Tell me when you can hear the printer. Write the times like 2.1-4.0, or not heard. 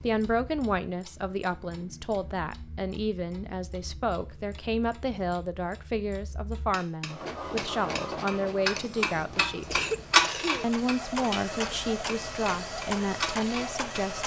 7.0-14.2.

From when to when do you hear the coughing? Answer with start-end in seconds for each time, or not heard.
8.8-10.7.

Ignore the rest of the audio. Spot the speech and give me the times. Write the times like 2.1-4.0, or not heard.
0.0-9.8, 10.6-14.2.